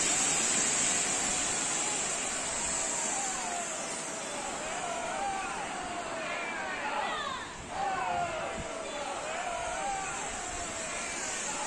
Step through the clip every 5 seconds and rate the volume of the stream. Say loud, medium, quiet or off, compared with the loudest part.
loud, medium, medium.